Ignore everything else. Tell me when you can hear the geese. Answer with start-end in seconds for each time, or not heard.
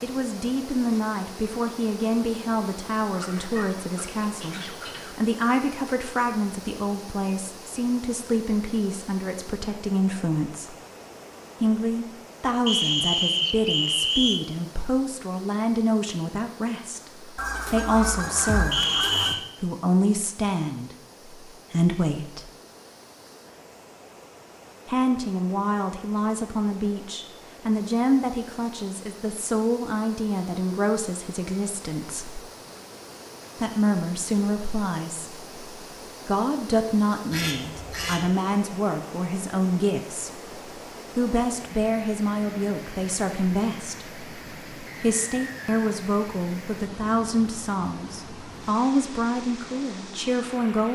3.1-5.2, 17.4-19.4, 37.3-38.3.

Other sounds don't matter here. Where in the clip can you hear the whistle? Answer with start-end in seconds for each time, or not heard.
12.7-14.4, 18.7-19.4, 44.9-45.9.